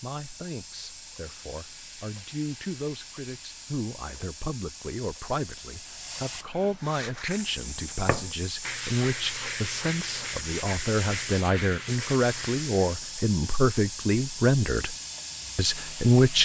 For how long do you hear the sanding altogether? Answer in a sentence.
The sanding can be heard for 6 seconds in total.